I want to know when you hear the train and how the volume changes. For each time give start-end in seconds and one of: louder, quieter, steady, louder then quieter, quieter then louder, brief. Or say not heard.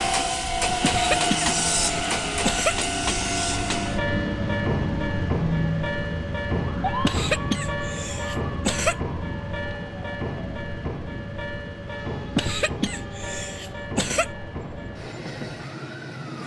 0.0-16.4 quieter.